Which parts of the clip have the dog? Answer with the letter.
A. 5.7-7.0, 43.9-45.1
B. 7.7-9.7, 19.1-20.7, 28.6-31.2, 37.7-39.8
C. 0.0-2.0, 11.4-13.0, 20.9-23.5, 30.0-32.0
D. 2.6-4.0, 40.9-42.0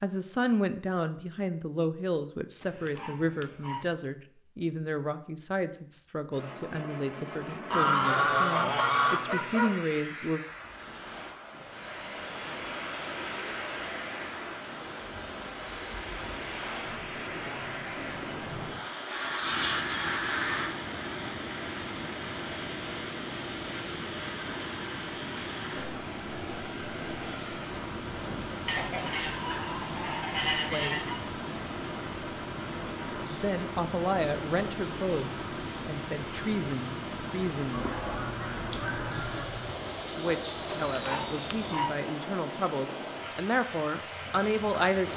D.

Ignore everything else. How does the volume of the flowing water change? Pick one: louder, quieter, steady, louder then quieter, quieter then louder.
steady.